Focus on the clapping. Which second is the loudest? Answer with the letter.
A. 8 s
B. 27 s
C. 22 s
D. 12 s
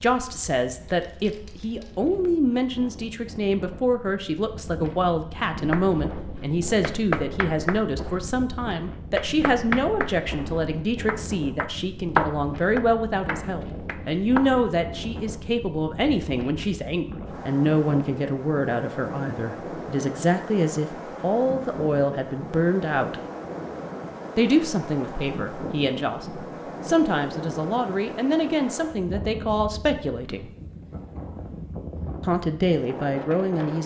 D.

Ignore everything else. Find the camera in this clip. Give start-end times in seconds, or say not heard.
not heard.